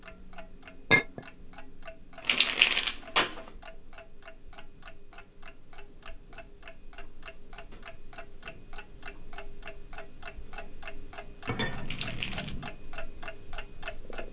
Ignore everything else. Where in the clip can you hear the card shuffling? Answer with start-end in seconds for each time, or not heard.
2.2-3.4, 11.8-12.6.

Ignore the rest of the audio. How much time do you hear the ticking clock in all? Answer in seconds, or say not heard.
14 s.